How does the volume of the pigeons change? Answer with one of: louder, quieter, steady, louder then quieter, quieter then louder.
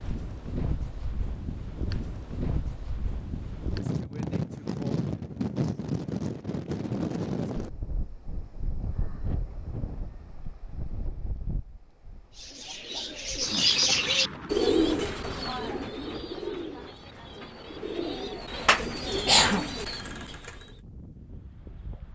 quieter then louder.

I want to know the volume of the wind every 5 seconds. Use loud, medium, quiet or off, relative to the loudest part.
loud, loud, medium, quiet, quiet.